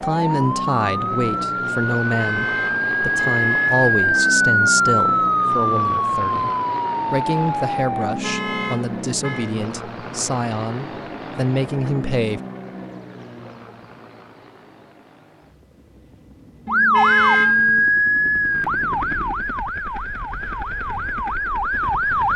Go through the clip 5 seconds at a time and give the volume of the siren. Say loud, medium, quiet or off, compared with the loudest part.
loud, loud, off, loud, medium.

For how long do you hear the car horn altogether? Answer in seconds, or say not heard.
5 s.